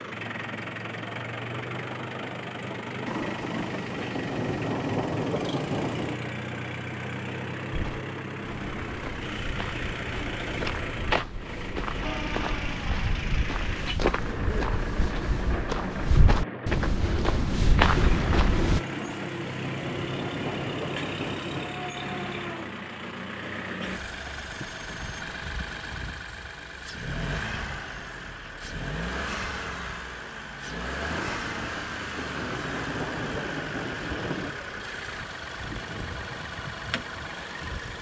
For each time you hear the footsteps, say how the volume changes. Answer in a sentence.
The footsteps can be heard from 7.7 to 18.8 s, getting louder.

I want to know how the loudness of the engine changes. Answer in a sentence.
The volume of the engine stays about the same.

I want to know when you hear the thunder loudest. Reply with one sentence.
The loudest moment of the thunder is at 5 seconds.